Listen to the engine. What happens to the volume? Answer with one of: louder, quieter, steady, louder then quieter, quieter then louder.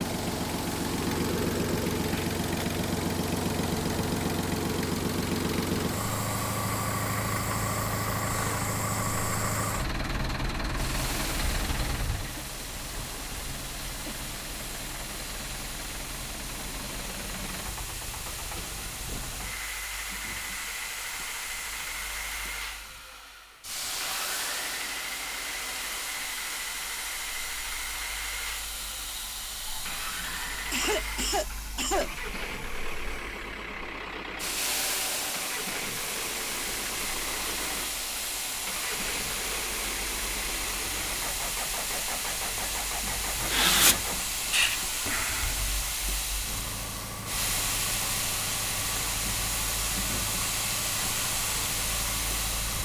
quieter.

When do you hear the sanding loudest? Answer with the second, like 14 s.
44 s.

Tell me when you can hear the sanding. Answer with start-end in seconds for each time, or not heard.
43.4-45.8.